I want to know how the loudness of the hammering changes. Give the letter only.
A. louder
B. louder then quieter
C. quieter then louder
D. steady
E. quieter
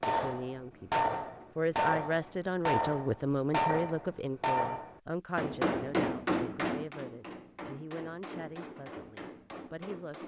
E.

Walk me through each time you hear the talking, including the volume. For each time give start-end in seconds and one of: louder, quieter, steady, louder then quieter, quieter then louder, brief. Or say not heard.
0.1-10.2 quieter.